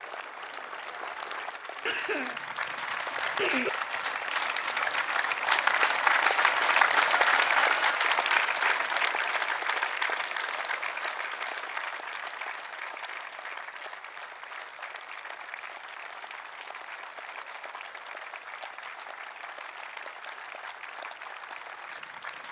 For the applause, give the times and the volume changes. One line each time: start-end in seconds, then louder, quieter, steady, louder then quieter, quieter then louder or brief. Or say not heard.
0.0-22.4 louder then quieter.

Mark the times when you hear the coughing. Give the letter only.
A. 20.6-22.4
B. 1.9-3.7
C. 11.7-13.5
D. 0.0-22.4
B.